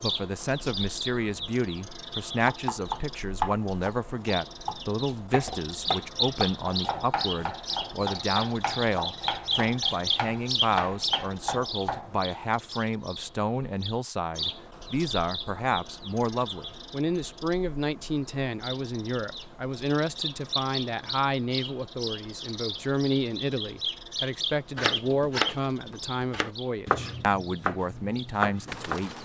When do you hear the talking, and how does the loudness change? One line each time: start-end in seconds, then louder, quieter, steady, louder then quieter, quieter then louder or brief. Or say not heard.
0.0-29.1 steady.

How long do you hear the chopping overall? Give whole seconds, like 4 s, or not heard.
14 s.